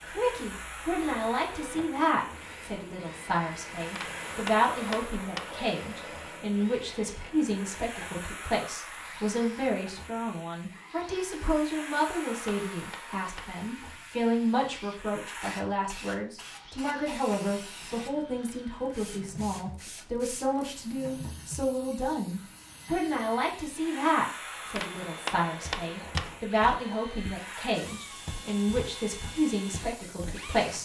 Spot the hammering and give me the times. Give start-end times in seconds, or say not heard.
4.0-5.5, 11.9-13.6, 24.8-26.4.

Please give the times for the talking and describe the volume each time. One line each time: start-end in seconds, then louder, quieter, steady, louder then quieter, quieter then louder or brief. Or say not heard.
0.0-30.8 steady.